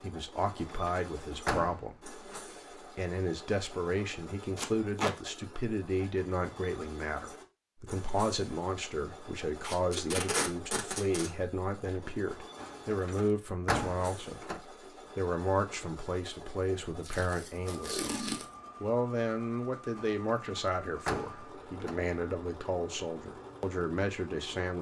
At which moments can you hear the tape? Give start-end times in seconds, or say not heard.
4.5-5.2, 9.6-11.3, 17.0-18.4.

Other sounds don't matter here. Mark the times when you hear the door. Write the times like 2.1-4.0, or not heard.
0.5-1.9, 12.6-14.6, 19.9-21.9.